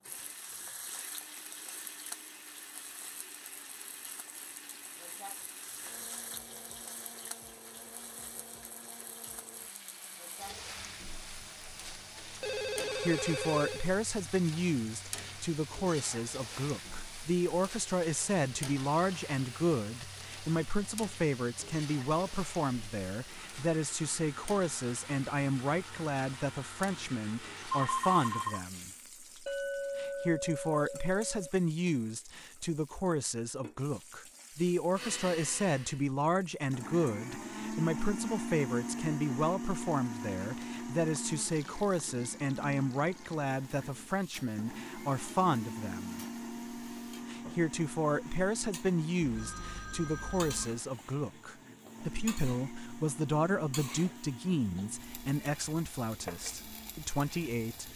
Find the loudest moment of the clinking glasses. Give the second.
30 s.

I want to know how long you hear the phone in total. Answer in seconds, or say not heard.
4 s.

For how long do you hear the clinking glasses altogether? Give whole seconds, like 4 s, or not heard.
2 s.